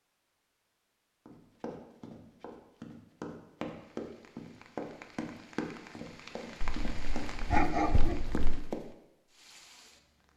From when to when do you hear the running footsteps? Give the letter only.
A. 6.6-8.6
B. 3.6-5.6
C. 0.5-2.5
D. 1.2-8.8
D.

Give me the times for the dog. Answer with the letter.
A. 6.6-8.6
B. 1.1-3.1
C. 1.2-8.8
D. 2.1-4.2
A.